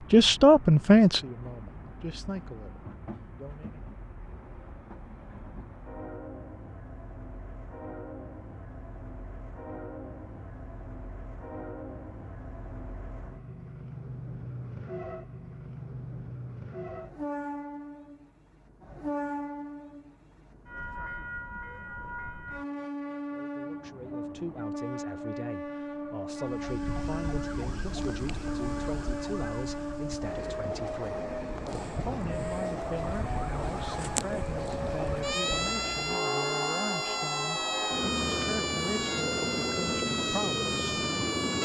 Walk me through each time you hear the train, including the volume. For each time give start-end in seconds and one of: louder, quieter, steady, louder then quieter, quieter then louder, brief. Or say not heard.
0.0-41.5 louder.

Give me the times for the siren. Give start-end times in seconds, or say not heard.
26.4-41.5.